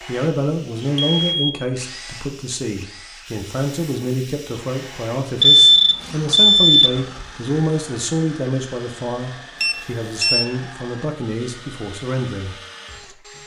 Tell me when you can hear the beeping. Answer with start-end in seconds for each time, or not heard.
1.1-1.6, 5.4-7.2, 9.6-10.4.